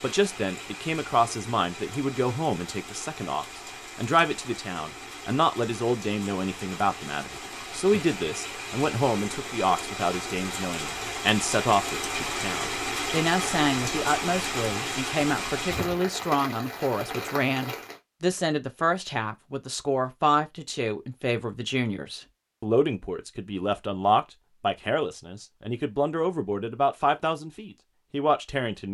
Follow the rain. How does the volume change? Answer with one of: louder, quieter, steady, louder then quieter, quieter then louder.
louder.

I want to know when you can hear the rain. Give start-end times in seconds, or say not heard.
0.0-18.0.